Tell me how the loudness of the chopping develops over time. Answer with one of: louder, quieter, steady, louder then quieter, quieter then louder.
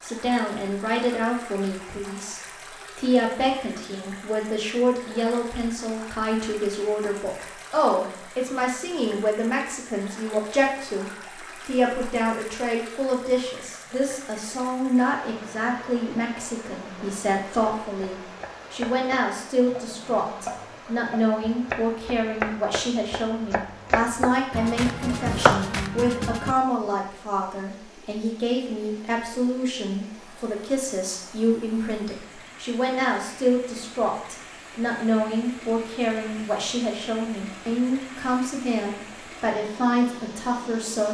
louder.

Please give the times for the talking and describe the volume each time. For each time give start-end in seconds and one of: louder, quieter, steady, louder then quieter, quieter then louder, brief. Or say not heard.
0.0-41.0 steady.